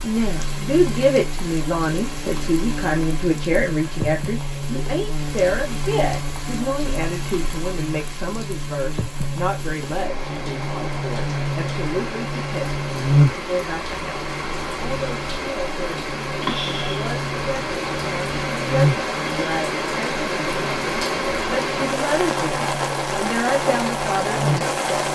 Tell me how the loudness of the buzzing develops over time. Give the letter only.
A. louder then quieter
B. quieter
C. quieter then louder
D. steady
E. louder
A.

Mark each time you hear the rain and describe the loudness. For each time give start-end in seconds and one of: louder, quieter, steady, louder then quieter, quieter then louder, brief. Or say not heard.
0.0-25.1 louder.